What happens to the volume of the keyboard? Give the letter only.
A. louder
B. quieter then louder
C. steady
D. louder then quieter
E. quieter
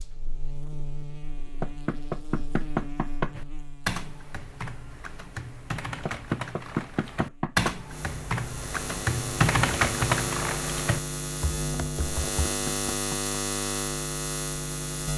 D.